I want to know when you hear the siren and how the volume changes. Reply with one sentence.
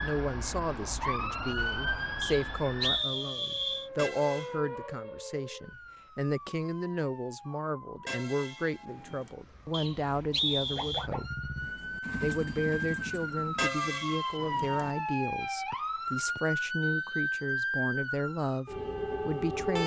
You can hear the siren from 0.0 to 19.8 s, getting quieter then louder.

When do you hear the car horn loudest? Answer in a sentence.
The loudest moment of the car horn is at 14 seconds.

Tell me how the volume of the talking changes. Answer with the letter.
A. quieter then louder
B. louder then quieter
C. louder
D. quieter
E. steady
E.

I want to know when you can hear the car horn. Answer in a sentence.
The car horn can be heard from 4.0 to 4.5 s, from 8.1 to 9.3 s and from 13.6 to 14.9 s.